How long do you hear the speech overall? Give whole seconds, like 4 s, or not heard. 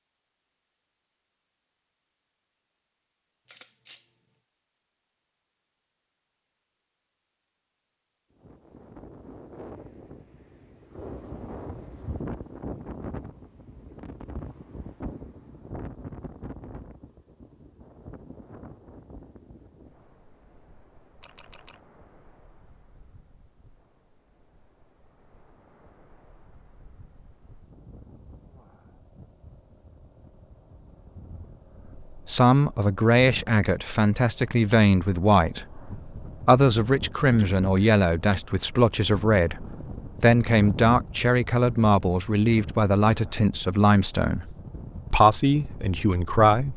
14 s.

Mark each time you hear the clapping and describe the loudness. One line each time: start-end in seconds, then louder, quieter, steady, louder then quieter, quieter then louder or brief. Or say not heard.
not heard.